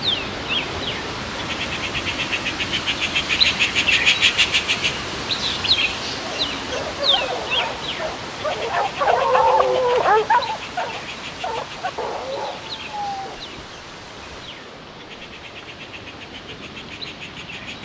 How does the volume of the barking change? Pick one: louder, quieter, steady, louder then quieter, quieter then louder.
louder then quieter.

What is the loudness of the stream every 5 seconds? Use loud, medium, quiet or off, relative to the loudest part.
loud, loud, medium, medium.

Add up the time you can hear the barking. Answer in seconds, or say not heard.
7 s.